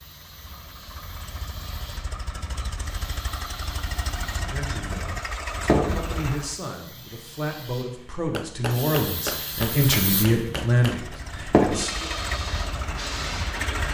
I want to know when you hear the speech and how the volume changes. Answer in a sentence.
The speech can be heard from 4.3 to 12.1 s, getting louder.